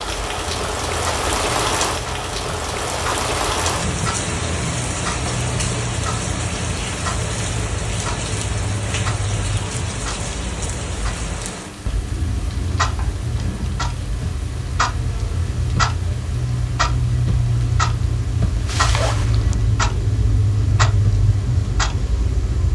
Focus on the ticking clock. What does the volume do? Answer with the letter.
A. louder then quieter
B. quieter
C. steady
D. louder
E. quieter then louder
D.